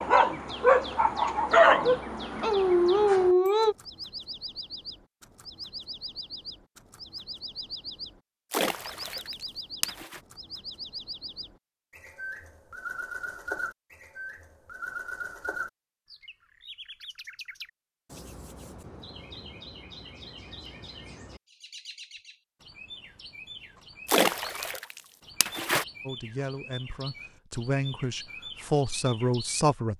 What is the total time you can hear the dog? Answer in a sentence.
The dog can be heard for 4 seconds in total.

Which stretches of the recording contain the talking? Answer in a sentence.
The talking can be heard from 26.1 to 29.9 s.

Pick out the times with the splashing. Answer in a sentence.
You can hear the splashing from 8.5 to 10.2 s and from 24.1 to 25.9 s.